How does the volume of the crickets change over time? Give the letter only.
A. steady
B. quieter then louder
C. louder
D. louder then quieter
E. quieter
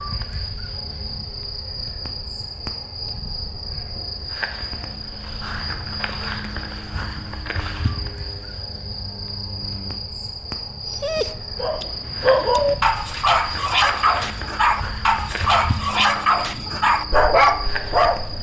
A.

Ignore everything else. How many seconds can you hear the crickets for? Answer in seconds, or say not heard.
18 s.